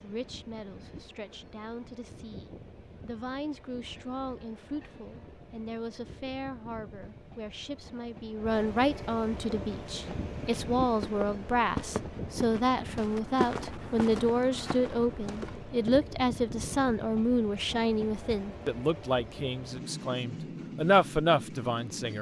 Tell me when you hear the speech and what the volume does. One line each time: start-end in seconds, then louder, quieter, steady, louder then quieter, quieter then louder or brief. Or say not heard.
0.0-22.1 louder.